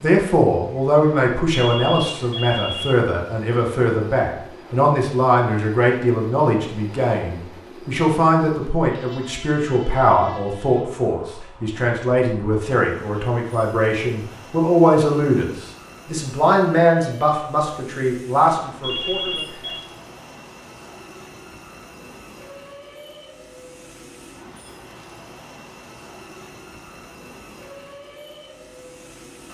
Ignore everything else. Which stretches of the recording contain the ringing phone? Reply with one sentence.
You can hear the ringing phone from 1.6 to 3.0 s and from 18.8 to 19.9 s.